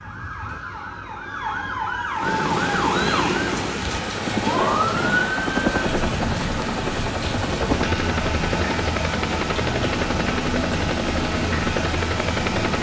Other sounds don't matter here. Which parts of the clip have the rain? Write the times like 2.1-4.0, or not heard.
2.2-12.7.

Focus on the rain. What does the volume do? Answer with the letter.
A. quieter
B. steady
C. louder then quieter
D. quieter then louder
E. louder
B.